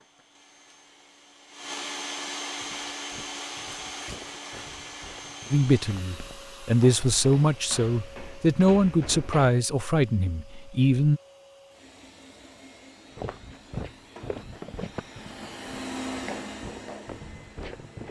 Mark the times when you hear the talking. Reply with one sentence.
You can hear the talking from 5.5 to 11.2 s.